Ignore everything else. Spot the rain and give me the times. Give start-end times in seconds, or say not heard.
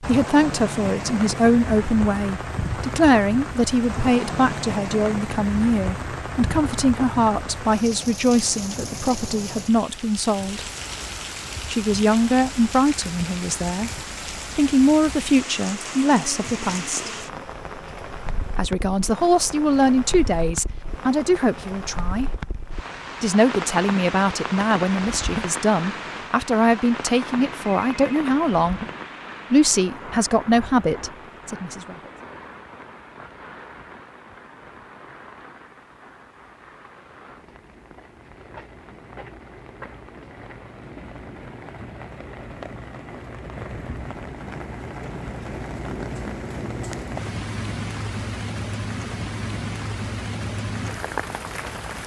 0.0-52.0.